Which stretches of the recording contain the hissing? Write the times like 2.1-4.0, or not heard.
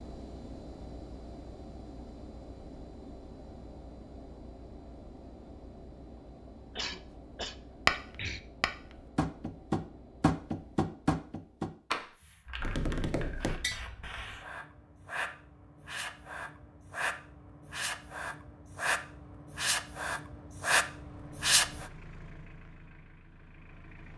12.1-21.9.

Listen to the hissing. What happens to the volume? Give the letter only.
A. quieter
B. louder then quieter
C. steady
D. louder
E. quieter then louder
D.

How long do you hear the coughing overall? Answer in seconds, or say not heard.
2 s.